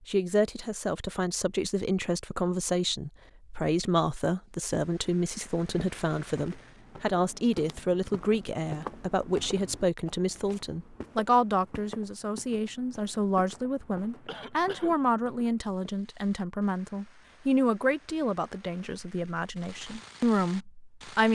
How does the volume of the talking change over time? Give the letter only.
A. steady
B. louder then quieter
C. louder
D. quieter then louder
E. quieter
A.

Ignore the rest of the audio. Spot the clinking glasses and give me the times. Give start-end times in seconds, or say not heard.
not heard.